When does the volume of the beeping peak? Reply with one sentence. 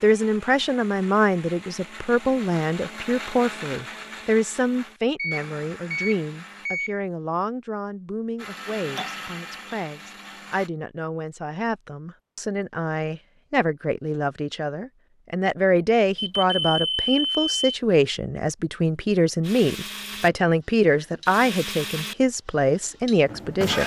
The loudest moment of the beeping is at 17 seconds.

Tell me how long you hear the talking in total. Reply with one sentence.
The talking can be heard for 24 seconds in total.